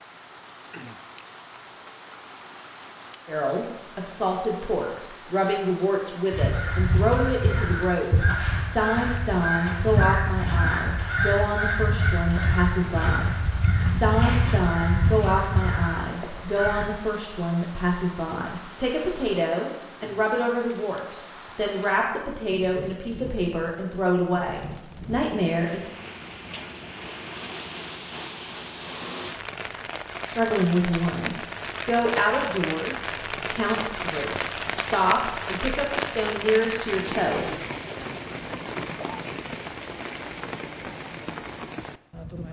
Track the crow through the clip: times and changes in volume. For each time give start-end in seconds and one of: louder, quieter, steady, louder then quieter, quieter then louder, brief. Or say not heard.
6.3-16.9 steady.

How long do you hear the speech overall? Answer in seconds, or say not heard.
30 s.